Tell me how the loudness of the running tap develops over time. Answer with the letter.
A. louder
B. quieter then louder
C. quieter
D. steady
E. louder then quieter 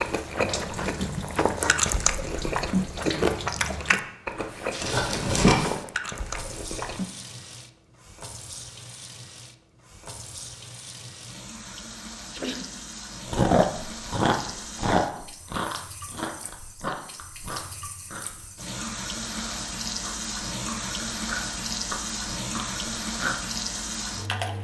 B.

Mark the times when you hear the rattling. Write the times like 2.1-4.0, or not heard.
4.8-5.6.